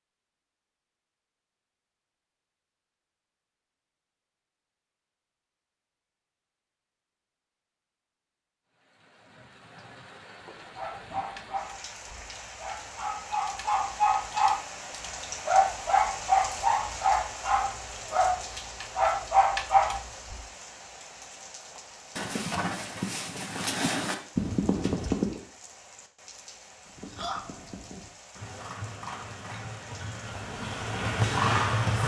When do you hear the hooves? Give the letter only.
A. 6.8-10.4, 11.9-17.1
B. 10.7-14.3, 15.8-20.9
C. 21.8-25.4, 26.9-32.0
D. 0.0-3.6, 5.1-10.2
C.